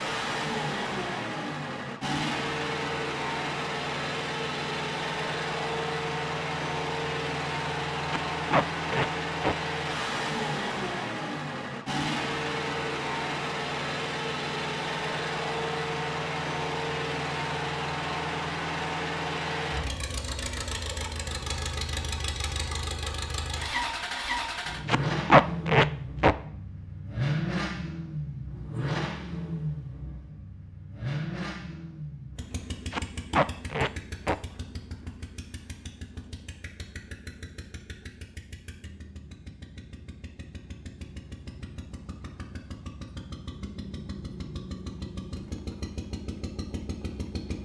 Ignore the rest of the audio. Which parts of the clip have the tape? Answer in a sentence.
The tape can be heard from 8.1 to 9.6 s, from 24.9 to 26.4 s and from 32.9 to 34.4 s.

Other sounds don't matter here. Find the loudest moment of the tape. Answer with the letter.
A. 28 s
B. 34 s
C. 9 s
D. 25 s
D.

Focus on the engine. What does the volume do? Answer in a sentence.
The volume of the engine goes down.